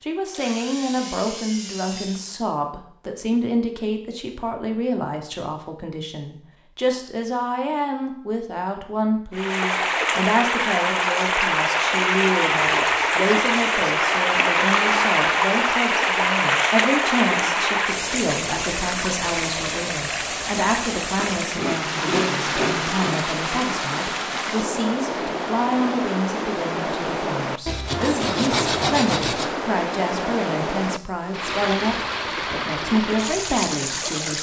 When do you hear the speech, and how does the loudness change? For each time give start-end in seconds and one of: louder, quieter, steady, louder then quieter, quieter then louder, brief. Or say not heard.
0.0-34.3 steady.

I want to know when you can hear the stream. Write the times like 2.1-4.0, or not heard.
9.3-34.3.